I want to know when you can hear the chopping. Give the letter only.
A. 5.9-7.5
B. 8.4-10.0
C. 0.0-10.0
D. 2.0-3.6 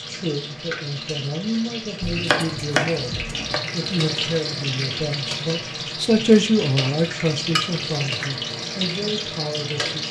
D.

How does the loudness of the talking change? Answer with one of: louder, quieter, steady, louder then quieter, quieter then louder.
louder then quieter.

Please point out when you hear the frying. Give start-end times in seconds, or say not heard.
0.0-10.0.